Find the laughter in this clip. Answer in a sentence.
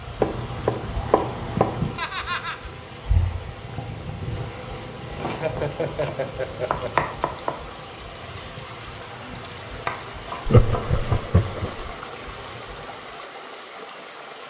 The laughter can be heard from 1.9 to 2.7 s, from 5.3 to 7.1 s and from 10.4 to 11.8 s.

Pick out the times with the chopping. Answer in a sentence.
You can hear the chopping from 0.2 to 1.9 s, from 5.1 to 7.6 s and from 9.8 to 11.3 s.